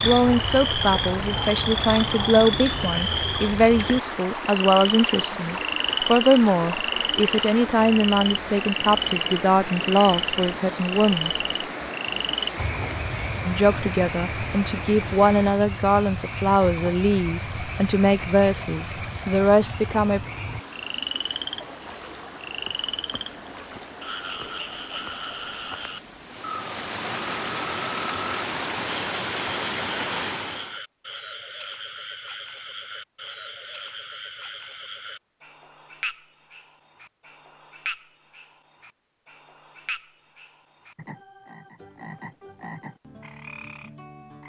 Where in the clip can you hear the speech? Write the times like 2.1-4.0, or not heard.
0.0-11.3, 13.4-20.2.